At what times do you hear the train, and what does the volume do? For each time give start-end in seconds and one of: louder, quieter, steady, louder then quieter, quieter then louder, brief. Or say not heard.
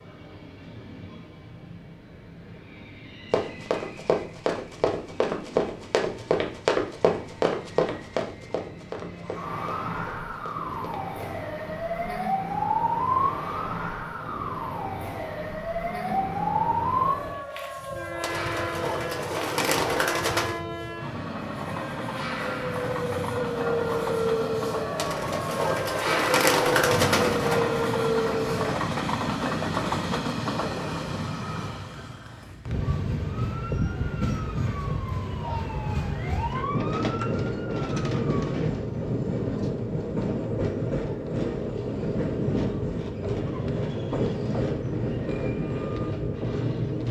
0.0-47.0 louder.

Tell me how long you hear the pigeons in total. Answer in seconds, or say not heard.
5 s.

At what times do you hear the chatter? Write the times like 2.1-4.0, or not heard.
not heard.